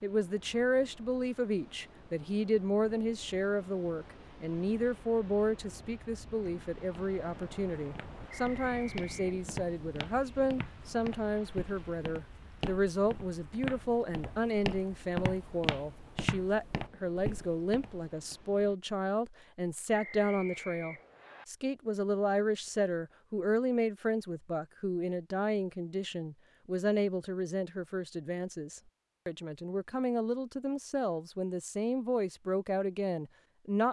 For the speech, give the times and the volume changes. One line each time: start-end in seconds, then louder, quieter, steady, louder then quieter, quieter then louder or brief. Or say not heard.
0.0-33.8 steady.